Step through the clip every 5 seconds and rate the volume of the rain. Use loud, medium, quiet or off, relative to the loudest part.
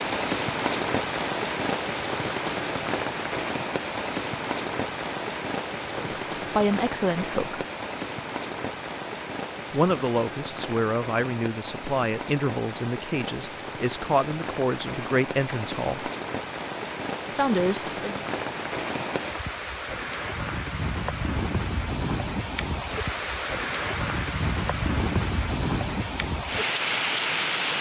loud, medium, medium, medium, loud, loud.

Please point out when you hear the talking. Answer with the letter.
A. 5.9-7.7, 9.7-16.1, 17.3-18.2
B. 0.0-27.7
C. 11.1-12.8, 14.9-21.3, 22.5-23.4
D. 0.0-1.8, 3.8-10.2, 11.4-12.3
A.